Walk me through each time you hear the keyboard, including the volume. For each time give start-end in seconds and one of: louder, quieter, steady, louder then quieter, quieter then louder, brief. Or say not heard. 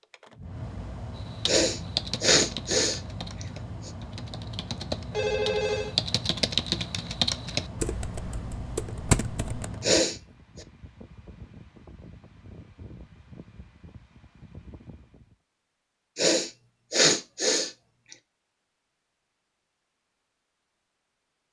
1.4-9.7 quieter then louder.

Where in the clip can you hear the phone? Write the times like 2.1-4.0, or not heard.
5.1-6.0.